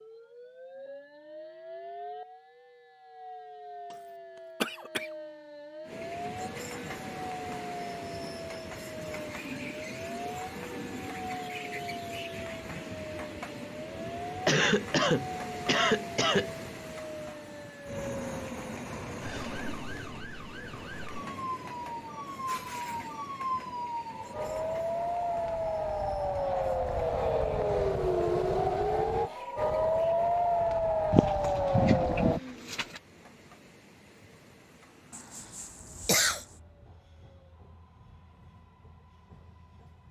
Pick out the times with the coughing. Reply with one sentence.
The coughing can be heard from 4.6 to 5.1 s, from 14.4 to 16.5 s and from 35.1 to 36.5 s.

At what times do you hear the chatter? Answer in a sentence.
You can't hear the chatter here.